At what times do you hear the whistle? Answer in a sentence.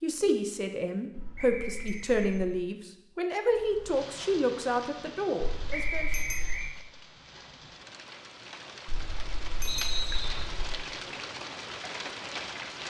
You can hear the whistle from 1.4 to 2.1 s, from 5.7 to 6.7 s and from 9.7 to 10.4 s.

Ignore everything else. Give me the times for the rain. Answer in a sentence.
The rain can be heard from 3.5 to 12.8 s.